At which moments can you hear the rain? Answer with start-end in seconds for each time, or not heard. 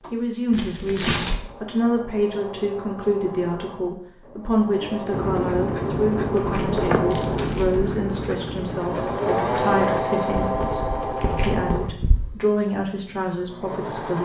not heard.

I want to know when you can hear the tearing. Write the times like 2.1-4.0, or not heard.
0.5-1.4, 6.2-7.9, 11.0-11.7.